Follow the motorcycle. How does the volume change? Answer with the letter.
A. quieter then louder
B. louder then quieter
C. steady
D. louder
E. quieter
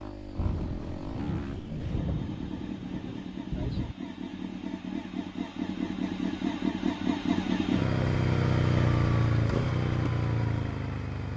D.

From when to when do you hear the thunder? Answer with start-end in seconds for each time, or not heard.
0.3-4.0.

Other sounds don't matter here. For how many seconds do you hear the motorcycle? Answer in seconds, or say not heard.
11 s.